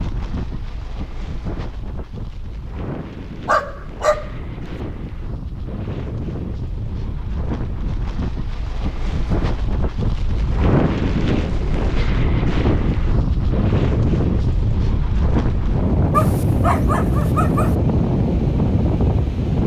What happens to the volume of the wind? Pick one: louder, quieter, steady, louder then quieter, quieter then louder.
louder.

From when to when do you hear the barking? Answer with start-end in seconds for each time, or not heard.
3.5-4.8, 16.1-17.8.